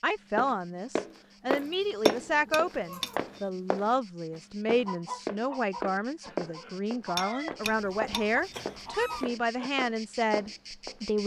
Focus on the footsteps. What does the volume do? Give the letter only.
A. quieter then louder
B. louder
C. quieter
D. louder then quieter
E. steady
C.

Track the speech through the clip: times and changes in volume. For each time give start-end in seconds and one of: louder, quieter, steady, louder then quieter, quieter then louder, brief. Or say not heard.
0.0-11.2 steady.